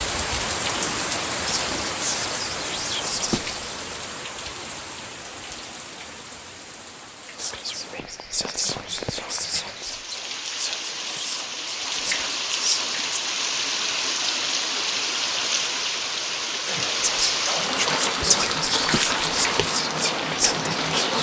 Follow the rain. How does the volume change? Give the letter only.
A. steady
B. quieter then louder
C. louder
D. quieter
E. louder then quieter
B.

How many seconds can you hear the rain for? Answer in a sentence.
The rain can be heard for 21 seconds in total.